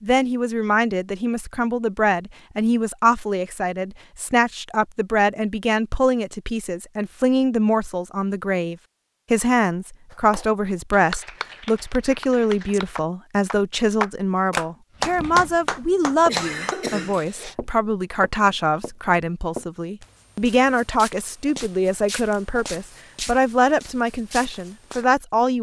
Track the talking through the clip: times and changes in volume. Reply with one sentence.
You can hear the talking from 0.0 to 25.5 s, at a steady volume.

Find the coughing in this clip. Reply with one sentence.
The coughing can be heard from 16.2 to 17.6 s.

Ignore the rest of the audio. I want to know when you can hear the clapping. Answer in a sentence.
You can hear the clapping from 10.1 to 16.8 s.